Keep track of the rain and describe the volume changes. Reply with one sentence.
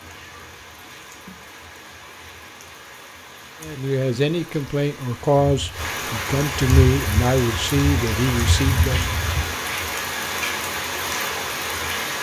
The loudness of the rain goes up.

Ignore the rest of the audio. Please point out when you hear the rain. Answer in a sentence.
The rain can be heard from 0.0 to 12.1 s.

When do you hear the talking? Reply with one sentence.
You can hear the talking from 3.6 to 9.1 s.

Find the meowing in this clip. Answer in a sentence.
The meowing can be heard from 0.1 to 1.5 s.